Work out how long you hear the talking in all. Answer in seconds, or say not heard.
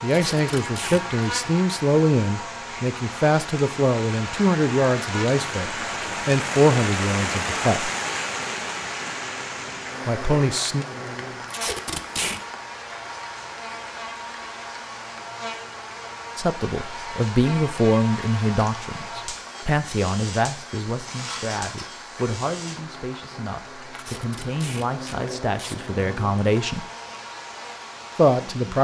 20 s.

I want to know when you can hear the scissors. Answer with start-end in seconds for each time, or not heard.
21.1-21.9.